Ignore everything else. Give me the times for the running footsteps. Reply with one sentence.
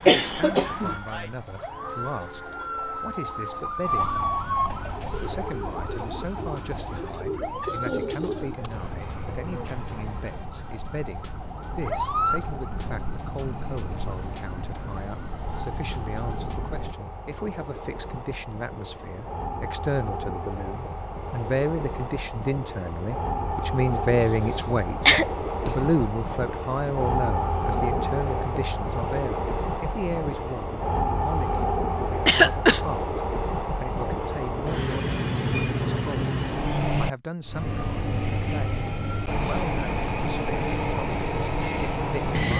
You can't hear the running footsteps here.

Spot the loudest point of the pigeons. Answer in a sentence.
The volume of the pigeons peaks at 8 seconds.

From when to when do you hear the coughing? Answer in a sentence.
You can hear the coughing from 0.1 to 0.9 s, from 24.2 to 25.7 s and from 32.2 to 32.8 s.